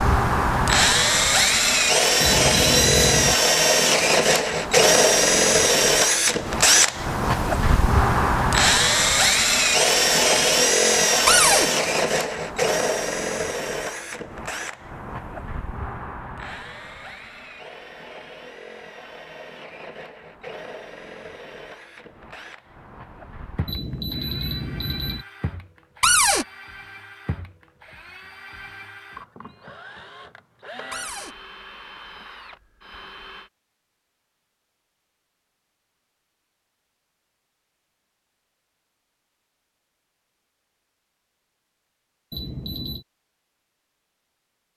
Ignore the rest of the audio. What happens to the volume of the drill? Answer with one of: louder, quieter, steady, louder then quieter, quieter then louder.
quieter.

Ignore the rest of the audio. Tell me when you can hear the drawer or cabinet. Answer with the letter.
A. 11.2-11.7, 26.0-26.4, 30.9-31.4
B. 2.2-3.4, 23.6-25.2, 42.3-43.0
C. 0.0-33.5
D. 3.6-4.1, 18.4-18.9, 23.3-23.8
A.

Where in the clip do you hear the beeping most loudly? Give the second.
3 s.